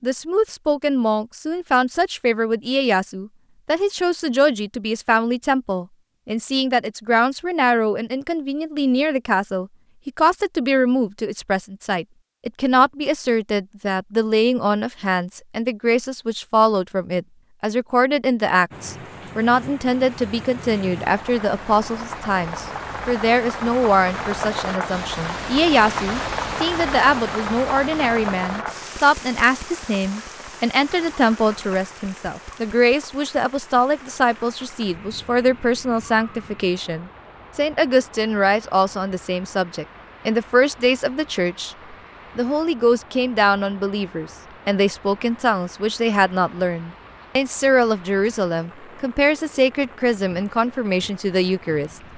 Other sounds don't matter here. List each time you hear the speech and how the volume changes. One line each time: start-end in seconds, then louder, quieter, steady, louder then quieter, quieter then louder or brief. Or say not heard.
0.0-41.8 steady
42.4-52.1 steady.